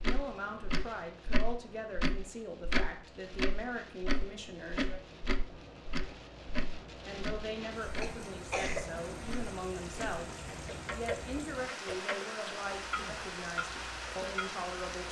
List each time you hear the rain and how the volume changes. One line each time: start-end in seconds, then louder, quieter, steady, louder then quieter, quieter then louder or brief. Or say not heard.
0.0-15.0 louder.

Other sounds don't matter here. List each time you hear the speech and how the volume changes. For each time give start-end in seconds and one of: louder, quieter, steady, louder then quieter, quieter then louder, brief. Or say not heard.
0.0-5.0 steady
7.0-15.0 steady.